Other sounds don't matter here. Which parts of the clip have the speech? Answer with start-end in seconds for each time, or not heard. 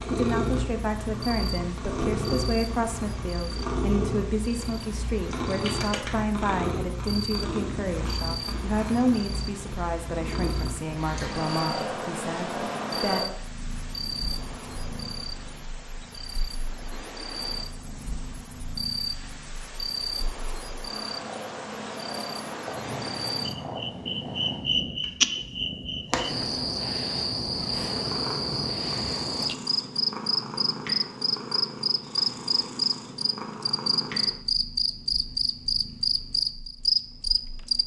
0.1-13.2.